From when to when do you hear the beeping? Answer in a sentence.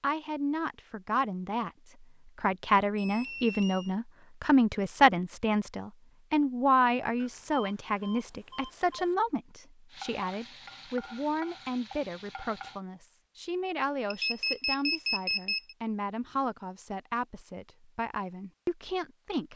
The beeping can be heard from 3.0 to 4.0 s, from 7.2 to 9.2 s and from 14.1 to 15.8 s.